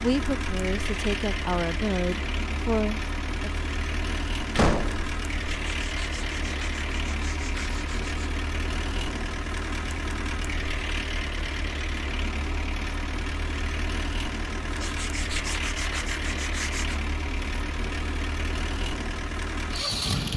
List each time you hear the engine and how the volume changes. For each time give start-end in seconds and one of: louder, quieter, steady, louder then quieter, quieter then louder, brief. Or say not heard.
0.0-20.3 steady.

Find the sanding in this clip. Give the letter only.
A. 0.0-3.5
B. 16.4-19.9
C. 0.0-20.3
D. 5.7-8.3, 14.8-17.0
D.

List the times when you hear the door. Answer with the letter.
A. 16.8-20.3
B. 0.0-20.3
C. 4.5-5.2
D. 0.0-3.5
C.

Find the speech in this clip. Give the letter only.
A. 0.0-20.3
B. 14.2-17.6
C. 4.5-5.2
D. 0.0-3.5
D.